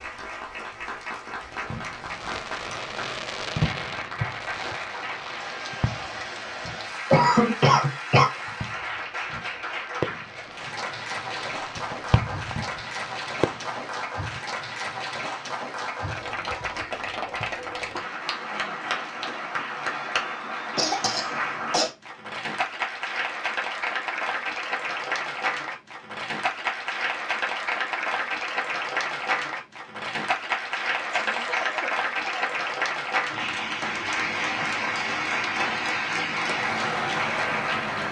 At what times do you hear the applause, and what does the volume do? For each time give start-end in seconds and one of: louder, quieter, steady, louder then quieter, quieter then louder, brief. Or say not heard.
0.0-38.0 louder.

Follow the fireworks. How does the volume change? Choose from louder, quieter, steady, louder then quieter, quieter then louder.
quieter then louder.